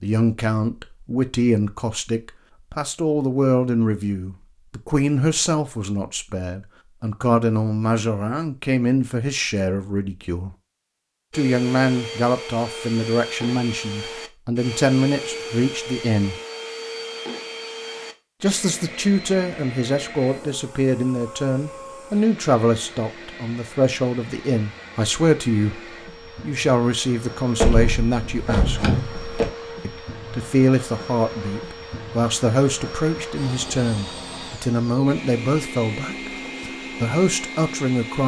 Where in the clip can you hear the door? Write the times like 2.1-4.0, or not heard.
27.6-29.5.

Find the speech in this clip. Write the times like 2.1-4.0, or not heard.
0.0-10.5, 11.3-16.4, 18.4-25.8, 26.4-28.9, 29.8-38.2.